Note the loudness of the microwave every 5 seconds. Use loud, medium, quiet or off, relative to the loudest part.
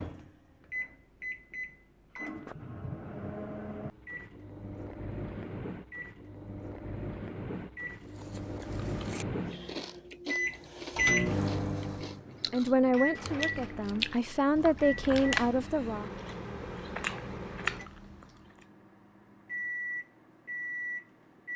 medium, medium, loud, medium, medium.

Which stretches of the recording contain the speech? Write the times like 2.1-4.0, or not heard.
12.5-16.1.